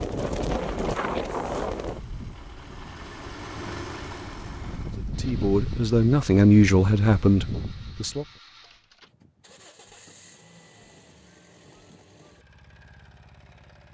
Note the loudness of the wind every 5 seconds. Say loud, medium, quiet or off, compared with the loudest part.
loud, loud, off.